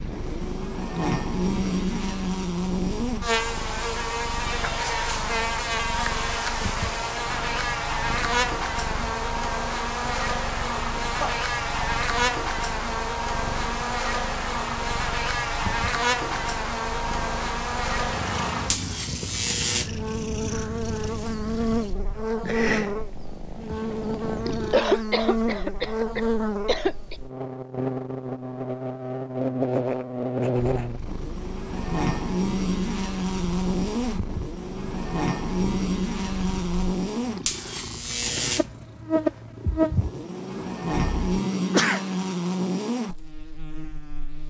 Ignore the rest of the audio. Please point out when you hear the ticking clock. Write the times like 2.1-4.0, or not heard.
not heard.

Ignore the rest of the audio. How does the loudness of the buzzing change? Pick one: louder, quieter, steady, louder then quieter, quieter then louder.
steady.